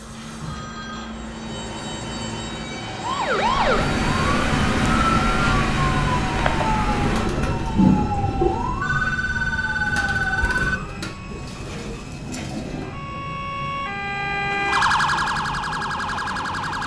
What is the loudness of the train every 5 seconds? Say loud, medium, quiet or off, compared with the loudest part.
loud, loud, medium, medium.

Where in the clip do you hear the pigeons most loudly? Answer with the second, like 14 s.
8 s.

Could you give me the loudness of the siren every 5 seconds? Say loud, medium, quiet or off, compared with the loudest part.
loud, loud, medium, loud.